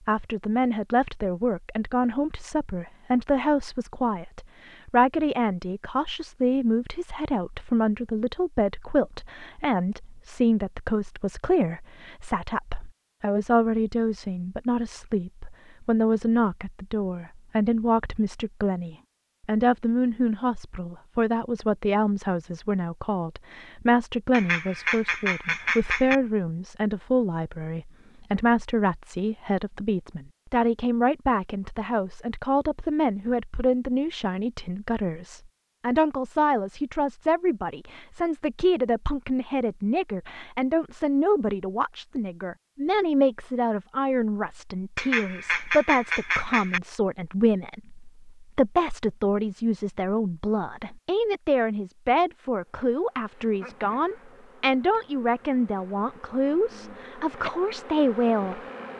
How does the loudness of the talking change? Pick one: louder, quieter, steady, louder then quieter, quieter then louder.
steady.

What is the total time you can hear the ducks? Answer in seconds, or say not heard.
4 s.